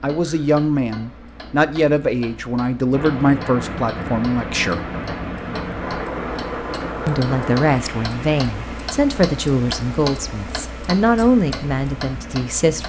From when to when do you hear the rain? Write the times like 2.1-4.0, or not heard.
2.9-12.7.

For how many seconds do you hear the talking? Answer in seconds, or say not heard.
11 s.